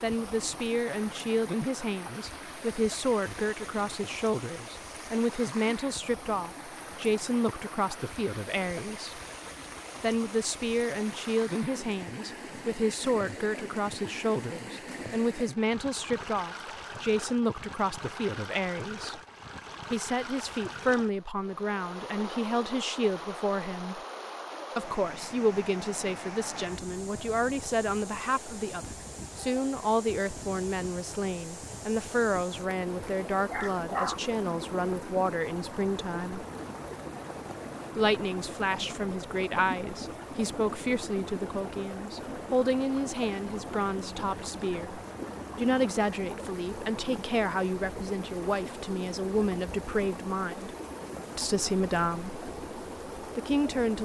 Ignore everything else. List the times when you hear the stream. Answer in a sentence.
You can hear the stream from 0.0 to 54.0 s.